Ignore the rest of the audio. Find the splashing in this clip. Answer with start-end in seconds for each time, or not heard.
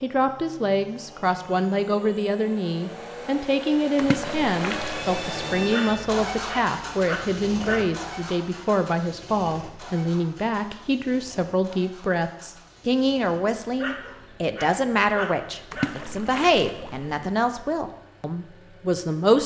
4.0-5.8, 15.7-17.4.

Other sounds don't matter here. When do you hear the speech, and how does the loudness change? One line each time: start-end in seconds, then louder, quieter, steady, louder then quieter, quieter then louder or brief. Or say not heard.
0.0-19.4 steady.